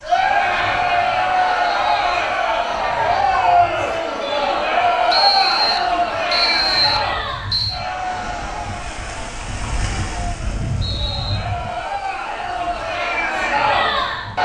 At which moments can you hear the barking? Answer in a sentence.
The barking can't be heard in this clip.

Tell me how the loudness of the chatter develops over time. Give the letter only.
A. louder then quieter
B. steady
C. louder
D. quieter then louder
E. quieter
D.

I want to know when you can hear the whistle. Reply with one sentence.
The whistle can be heard from 0.6 to 2.2 s, from 5.1 to 7.8 s and from 9.8 to 11.4 s.